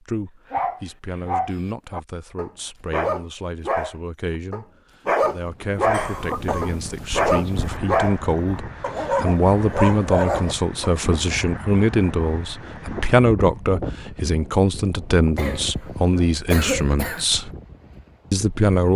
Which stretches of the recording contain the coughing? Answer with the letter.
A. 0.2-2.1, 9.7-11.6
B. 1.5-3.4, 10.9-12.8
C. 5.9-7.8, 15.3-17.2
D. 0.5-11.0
C.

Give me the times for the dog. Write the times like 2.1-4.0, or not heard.
0.5-11.0.